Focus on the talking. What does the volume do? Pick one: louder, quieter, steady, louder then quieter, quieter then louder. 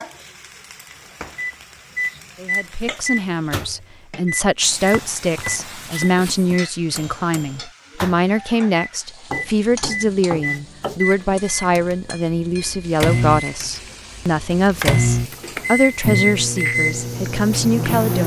steady.